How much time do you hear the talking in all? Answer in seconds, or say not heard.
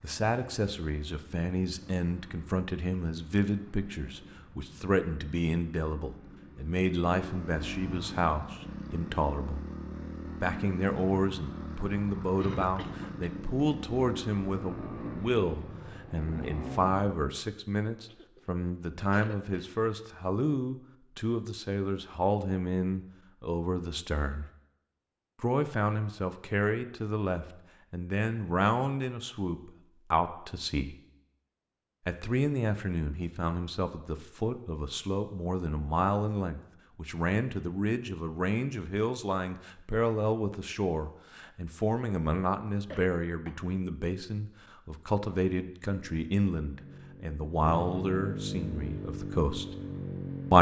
47 s.